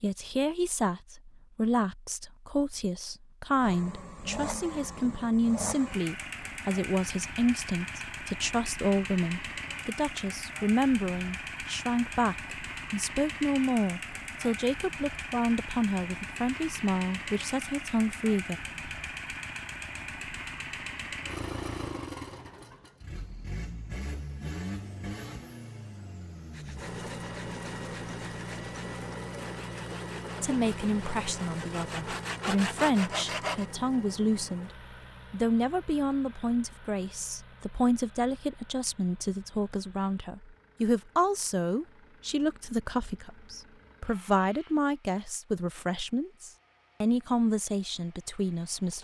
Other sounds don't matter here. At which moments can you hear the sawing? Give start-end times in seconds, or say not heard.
26.5-33.6.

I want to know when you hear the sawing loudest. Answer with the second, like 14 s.
33 s.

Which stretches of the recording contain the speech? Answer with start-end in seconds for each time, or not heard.
0.0-18.6, 30.4-34.7, 35.3-48.9.